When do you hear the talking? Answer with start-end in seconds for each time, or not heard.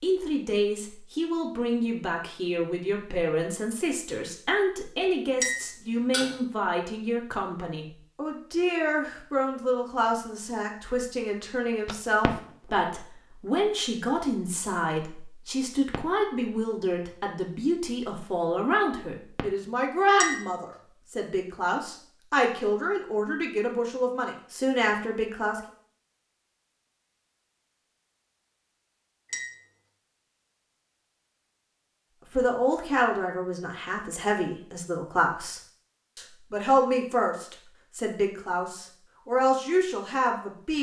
0.0-25.6, 32.3-40.7.